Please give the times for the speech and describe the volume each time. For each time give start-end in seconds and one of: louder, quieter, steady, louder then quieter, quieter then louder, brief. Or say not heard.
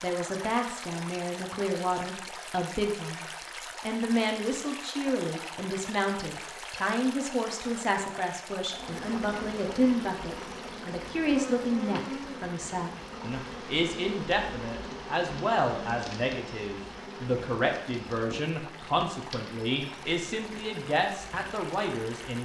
0.0-22.3 steady.